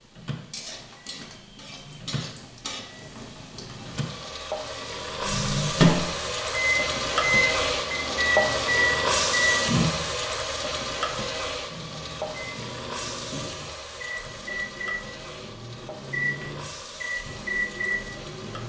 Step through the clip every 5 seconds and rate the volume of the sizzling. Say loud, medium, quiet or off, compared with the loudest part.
quiet, loud, medium, quiet.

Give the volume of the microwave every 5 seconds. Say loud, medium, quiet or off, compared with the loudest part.
quiet, loud, quiet, medium.